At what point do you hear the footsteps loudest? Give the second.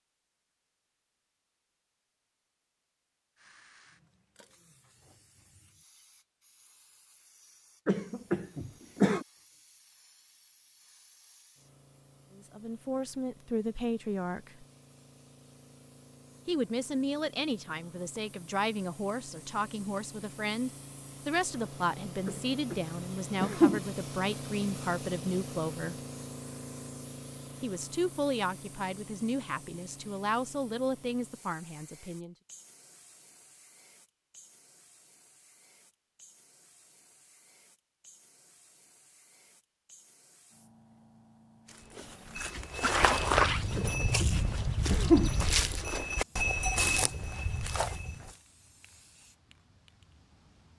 43 s.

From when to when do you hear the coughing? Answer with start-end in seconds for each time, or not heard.
7.8-9.2, 22.2-22.8, 23.4-23.8, 43.8-45.3.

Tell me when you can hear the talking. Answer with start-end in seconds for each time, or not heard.
12.3-14.7, 16.4-25.9, 27.6-32.4.